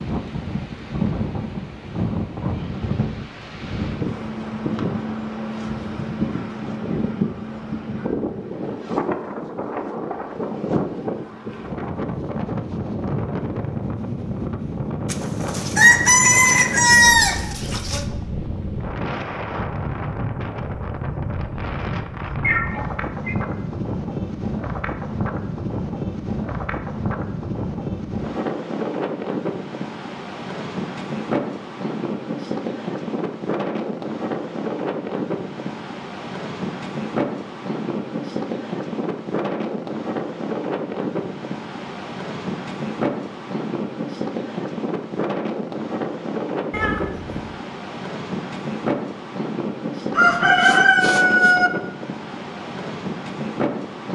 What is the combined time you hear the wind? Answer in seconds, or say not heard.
54 s.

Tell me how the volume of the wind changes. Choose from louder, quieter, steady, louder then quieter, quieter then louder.
steady.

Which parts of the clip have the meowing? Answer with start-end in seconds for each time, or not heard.
22.4-23.4, 46.7-47.4.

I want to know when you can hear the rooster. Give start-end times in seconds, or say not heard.
15.1-18.1, 50.1-51.7.